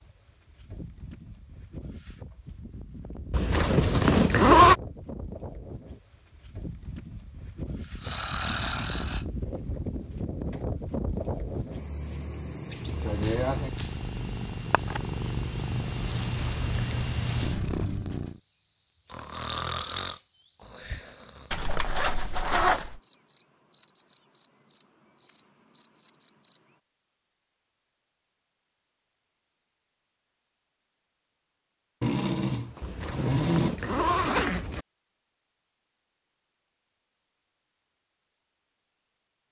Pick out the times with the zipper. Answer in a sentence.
The zipper can be heard from 3.3 to 4.8 s, from 21.5 to 23.0 s and from 32.8 to 34.9 s.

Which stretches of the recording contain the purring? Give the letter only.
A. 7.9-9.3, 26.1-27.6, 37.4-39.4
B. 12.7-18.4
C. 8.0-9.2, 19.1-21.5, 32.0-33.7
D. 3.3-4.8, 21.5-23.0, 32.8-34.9
B.